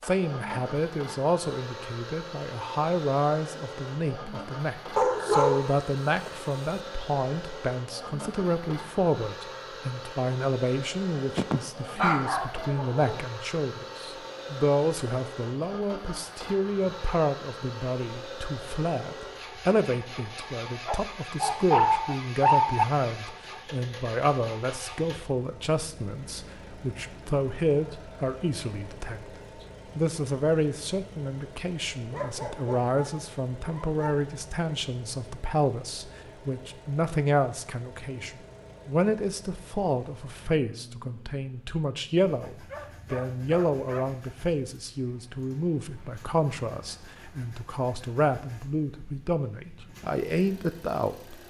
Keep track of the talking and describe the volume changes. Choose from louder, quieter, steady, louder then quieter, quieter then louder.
steady.